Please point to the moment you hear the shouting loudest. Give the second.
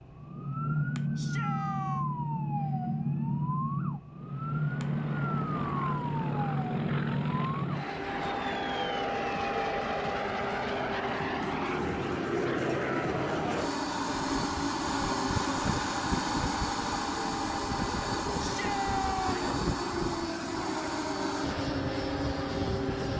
19 s.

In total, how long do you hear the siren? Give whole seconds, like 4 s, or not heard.
23 s.